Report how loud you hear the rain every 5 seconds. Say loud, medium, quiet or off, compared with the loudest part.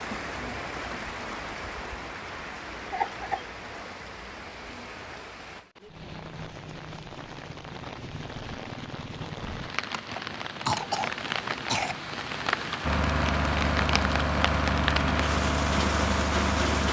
medium, medium, loud, loud.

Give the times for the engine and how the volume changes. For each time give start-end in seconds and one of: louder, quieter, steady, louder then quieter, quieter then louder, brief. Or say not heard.
12.8-16.8 steady.